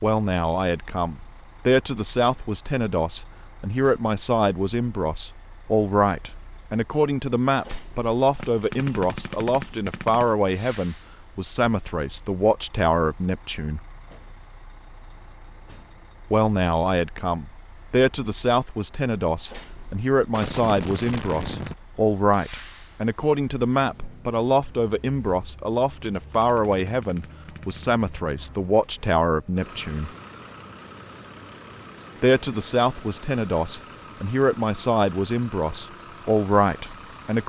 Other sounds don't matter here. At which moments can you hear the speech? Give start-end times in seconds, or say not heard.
0.0-13.8, 16.3-30.1, 32.2-37.4.